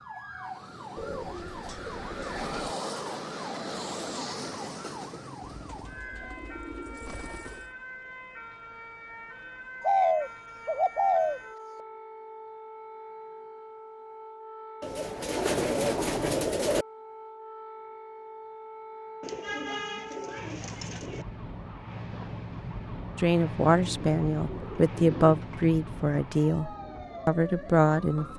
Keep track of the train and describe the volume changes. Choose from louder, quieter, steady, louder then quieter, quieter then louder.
louder then quieter.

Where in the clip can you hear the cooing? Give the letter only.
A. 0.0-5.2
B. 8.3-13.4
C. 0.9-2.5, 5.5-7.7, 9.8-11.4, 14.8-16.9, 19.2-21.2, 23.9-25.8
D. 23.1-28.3
C.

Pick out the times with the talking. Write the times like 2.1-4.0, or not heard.
23.1-28.3.